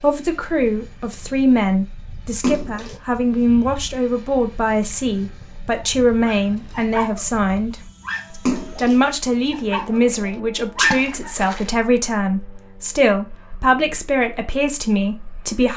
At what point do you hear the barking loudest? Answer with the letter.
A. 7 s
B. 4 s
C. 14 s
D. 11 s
D.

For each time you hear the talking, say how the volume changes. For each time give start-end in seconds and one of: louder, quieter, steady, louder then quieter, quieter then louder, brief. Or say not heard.
0.0-15.7 steady.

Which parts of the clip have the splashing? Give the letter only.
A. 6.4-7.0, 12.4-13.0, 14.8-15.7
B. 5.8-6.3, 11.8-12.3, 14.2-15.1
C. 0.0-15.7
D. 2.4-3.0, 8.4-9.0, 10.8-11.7
D.